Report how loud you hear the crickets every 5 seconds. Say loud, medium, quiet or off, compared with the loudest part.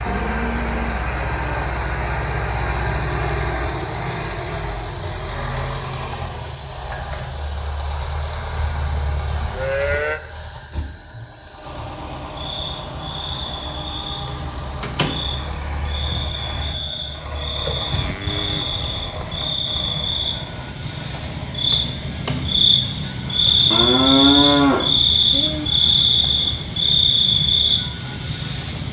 quiet, quiet, quiet, medium, loud, loud.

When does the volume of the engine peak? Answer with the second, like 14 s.
3 s.